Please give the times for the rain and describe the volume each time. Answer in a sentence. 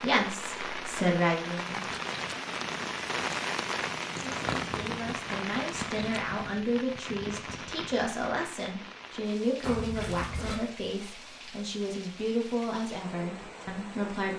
You can hear the rain from 0.0 to 14.3 s, getting quieter.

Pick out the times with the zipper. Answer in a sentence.
The zipper can be heard from 9.6 to 10.6 s.